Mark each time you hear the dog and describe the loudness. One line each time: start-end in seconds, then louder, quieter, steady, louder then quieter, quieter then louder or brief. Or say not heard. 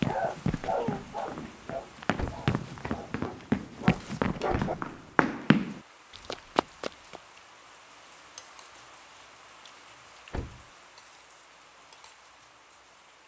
0.0-4.8 quieter then louder.